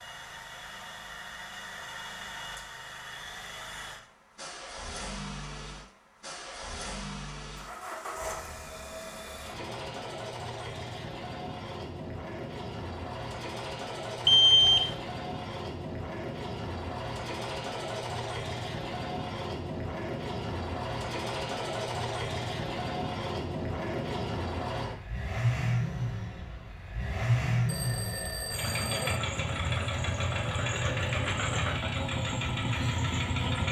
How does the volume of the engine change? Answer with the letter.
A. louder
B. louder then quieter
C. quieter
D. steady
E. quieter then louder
A.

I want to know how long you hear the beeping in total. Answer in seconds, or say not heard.
2 s.